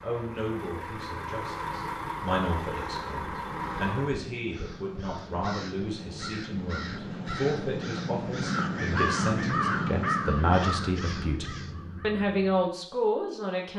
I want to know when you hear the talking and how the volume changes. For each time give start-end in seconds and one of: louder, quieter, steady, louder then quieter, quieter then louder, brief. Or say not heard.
0.0-13.7 louder.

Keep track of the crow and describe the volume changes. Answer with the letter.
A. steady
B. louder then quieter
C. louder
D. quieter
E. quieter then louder
B.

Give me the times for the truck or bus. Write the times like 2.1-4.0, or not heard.
0.0-4.2.